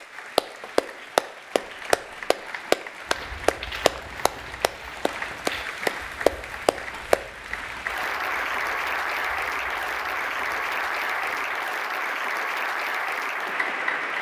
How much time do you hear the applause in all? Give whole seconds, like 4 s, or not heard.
14 s.